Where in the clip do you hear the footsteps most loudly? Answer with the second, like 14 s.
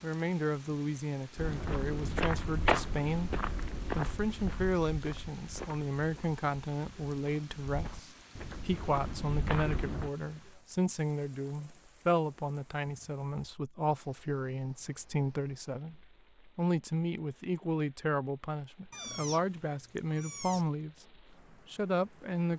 3 s.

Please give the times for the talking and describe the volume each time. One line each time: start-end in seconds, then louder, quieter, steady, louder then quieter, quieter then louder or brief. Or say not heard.
0.0-22.5 steady.